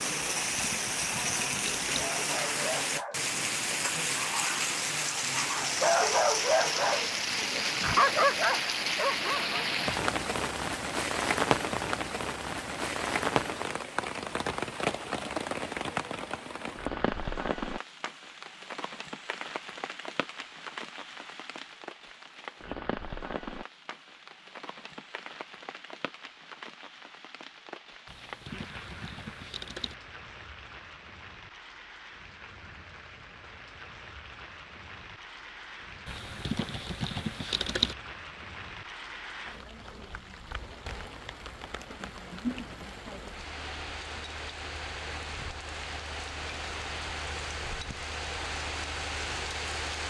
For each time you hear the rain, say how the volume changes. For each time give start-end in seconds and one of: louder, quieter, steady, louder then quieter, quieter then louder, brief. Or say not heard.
0.0-50.0 quieter then louder.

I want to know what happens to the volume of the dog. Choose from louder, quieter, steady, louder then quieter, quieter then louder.
louder.